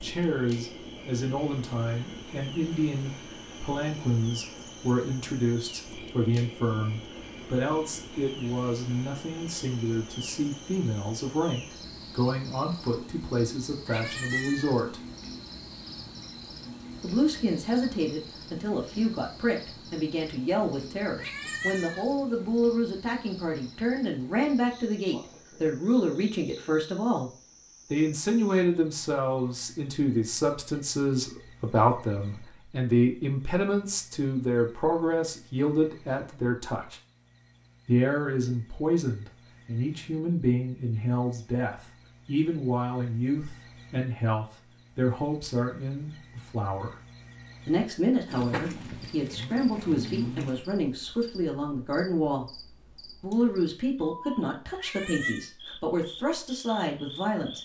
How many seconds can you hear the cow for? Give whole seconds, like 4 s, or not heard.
2 s.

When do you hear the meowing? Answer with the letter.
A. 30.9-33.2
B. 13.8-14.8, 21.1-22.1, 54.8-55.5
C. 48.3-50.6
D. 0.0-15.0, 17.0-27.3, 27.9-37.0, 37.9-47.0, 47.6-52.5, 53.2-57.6
B.